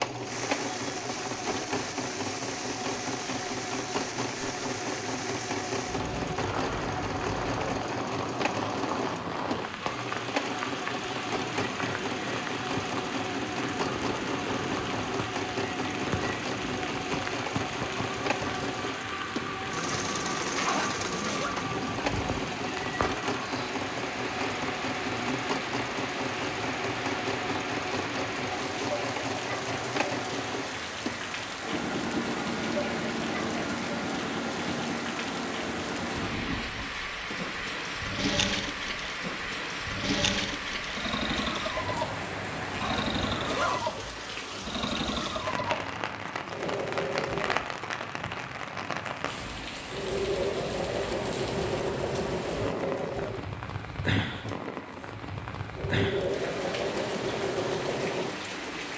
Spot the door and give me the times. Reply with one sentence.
You can't hear the door here.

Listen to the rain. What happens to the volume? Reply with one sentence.
The volume of the rain stays about the same.